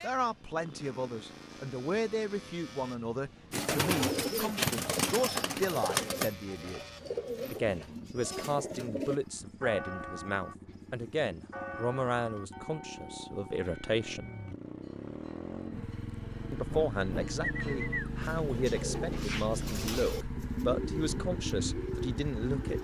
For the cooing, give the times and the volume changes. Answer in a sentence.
You can hear the cooing from 3.5 to 9.2 s, getting quieter; and from 17.4 to 22.7 s, at a steady volume.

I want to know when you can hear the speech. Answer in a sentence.
The speech can be heard from 0.0 to 6.8 s, from 7.5 to 14.3 s and from 16.5 to 22.7 s.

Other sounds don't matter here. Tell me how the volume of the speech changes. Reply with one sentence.
The volume of the speech stays about the same.